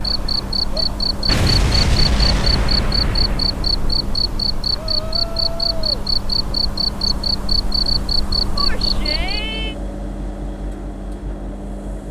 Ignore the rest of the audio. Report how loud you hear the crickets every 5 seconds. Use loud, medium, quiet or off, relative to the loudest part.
loud, loud, off.